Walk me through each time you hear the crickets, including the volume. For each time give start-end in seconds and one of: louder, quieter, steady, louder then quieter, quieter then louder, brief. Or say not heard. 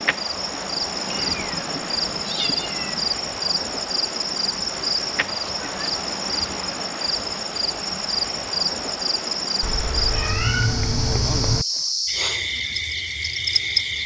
0.0-14.0 steady.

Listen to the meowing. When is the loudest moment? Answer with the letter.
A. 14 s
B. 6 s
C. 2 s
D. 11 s
D.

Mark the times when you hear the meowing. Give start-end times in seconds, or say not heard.
1.1-3.0, 4.7-6.1, 9.6-11.7.